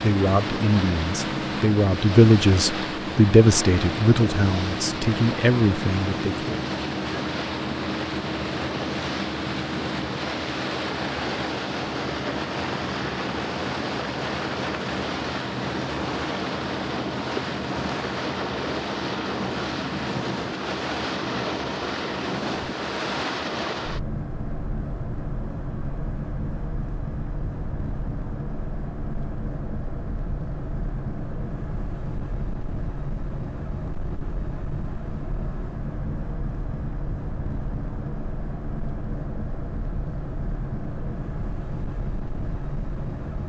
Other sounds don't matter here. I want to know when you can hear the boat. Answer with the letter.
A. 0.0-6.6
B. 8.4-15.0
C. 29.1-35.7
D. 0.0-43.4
D.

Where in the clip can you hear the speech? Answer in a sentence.
The speech can be heard from 0.0 to 6.6 s.